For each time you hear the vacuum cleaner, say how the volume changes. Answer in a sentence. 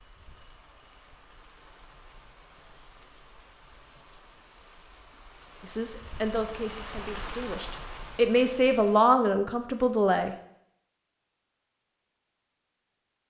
The vacuum cleaner can't be heard in this clip.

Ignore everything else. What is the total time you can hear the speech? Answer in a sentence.
The speech can be heard for 5 seconds in total.